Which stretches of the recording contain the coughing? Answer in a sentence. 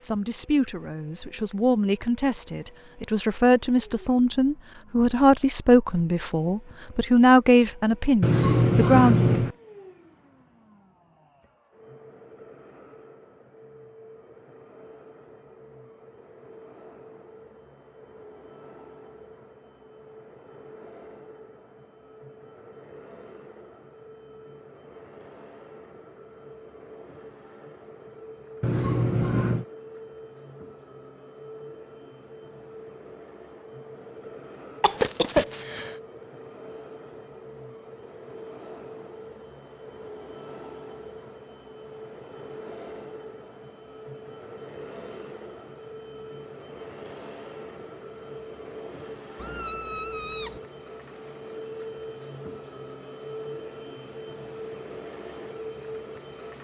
You can hear the coughing from 34.8 to 36.0 s.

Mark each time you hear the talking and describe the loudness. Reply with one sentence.
The talking can be heard from 0.0 to 9.2 s, getting louder.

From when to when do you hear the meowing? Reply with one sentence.
You can hear the meowing from 8.2 to 9.6 s, from 28.6 to 29.6 s and from 49.4 to 50.6 s.